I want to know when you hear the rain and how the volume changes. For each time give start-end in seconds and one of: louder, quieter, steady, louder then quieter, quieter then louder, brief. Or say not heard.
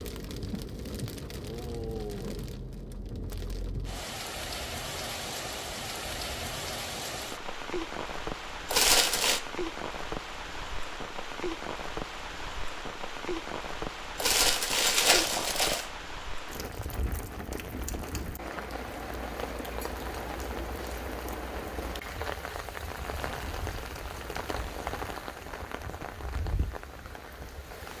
0.0-27.9 steady.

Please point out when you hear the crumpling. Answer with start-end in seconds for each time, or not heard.
8.7-9.4, 14.2-15.8.